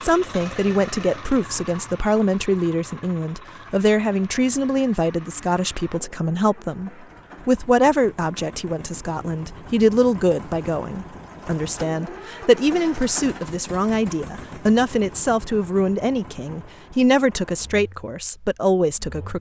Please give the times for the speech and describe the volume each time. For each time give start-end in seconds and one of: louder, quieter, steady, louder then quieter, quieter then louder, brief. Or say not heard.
0.0-19.3 steady.